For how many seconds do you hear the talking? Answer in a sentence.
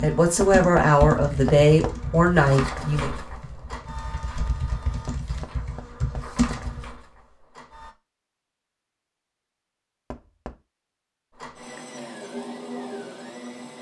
The talking can be heard for 3 seconds in total.